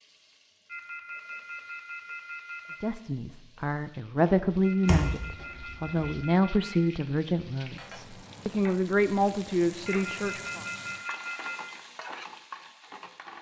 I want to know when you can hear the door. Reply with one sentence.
You can hear the door from 4.8 to 6.2 s.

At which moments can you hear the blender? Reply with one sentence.
The blender can't be heard in this clip.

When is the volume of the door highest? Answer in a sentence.
The loudest moment of the door is at 5 seconds.